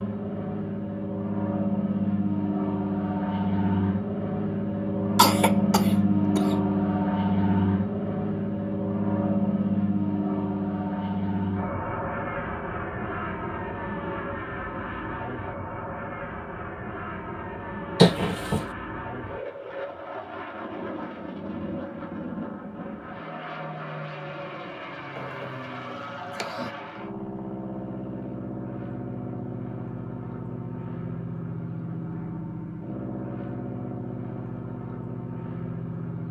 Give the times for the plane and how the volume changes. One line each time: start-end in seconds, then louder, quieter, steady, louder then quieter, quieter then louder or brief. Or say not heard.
0.0-36.2 quieter.